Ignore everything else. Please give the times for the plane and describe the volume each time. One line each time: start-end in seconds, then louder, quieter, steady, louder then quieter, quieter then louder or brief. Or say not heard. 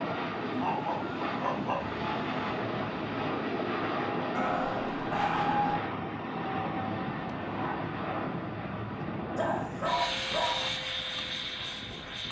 0.0-12.2 steady.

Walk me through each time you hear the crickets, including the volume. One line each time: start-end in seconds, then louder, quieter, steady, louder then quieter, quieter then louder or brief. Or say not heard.
not heard.